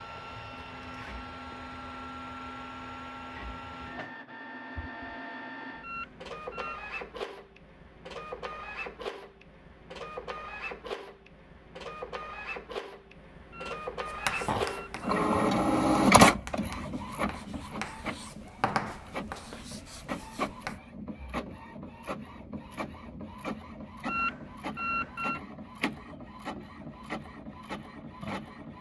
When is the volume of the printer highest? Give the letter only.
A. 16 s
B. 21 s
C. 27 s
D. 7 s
A.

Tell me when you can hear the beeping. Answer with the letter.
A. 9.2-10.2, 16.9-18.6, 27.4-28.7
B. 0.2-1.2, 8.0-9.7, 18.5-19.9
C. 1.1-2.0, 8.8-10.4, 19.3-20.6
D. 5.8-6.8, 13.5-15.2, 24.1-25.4
D.